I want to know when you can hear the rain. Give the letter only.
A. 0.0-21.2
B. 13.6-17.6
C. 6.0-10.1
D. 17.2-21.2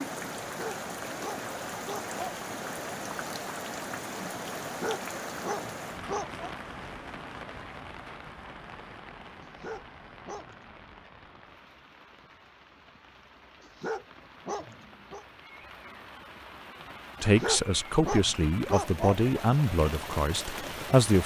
A.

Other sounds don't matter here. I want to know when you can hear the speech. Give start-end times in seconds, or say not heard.
17.2-21.2.